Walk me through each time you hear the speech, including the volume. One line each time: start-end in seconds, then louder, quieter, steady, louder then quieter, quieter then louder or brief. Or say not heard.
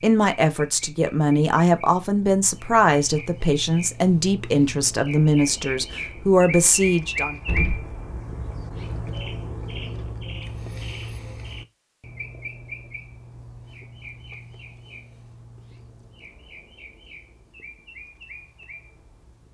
0.0-7.3 steady.